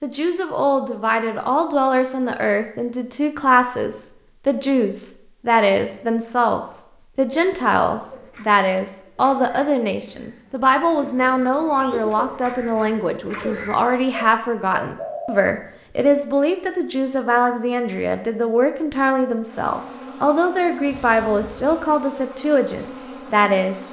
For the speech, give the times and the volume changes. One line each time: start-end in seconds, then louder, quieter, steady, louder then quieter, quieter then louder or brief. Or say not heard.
0.0-23.8 steady.